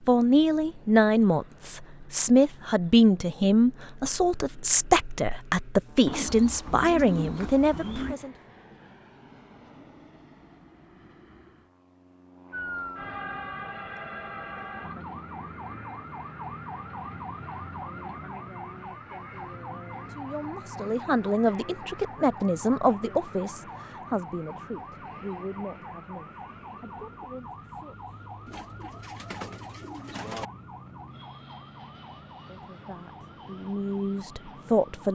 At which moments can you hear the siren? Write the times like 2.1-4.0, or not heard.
12.5-35.0.